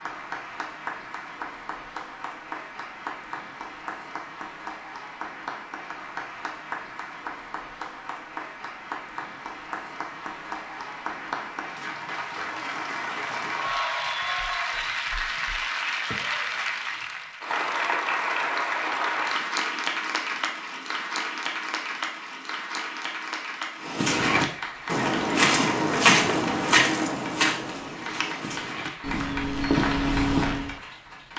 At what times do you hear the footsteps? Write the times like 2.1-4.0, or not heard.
23.8-30.7.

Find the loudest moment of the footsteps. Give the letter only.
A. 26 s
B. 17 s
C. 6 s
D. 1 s
A.